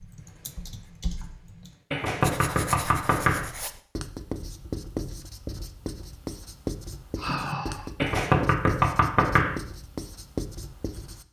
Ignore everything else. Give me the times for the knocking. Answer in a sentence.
The knocking can be heard from 1.9 to 3.5 s and from 8.0 to 9.6 s.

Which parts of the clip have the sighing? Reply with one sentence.
You can hear the sighing from 7.2 to 7.9 s.